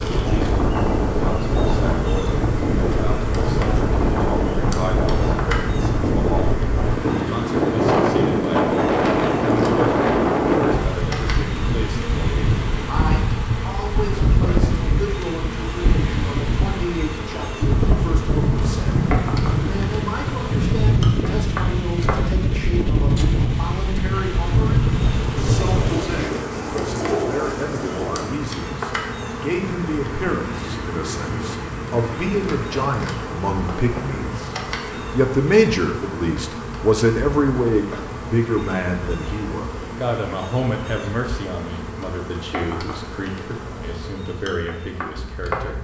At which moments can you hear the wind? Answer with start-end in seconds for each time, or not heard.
0.0-26.2.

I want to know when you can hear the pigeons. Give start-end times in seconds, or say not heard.
25.4-28.2.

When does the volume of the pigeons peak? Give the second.
27 s.